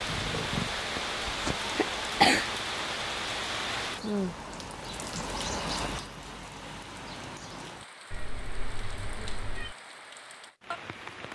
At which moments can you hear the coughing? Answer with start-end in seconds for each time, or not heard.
0.8-2.5.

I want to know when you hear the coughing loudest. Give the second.
2 s.